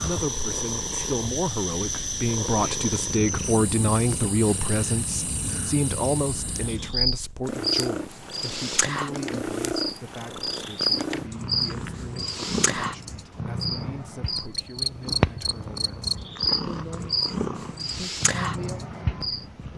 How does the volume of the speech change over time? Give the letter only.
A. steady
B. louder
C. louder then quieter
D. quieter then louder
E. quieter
E.